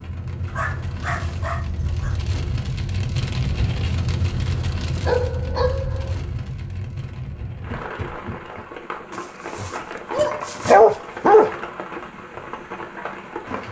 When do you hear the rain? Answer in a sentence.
You can hear the rain from 0.0 to 13.6 s.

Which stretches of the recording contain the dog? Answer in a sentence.
You can hear the dog from 0.5 to 2.1 s, from 4.6 to 6.2 s and from 9.1 to 11.6 s.